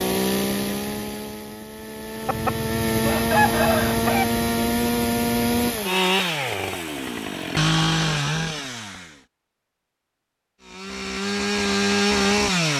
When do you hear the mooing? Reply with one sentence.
The mooing can't be heard in this clip.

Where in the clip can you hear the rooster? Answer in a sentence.
The rooster can be heard from 2.2 to 4.2 s.